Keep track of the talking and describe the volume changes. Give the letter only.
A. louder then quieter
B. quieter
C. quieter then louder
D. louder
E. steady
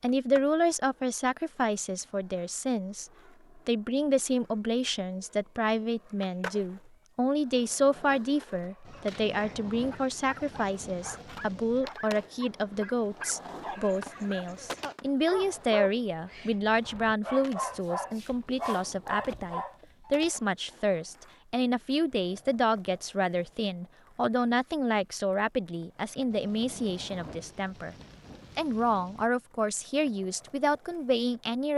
E.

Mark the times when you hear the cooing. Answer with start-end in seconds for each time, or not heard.
not heard.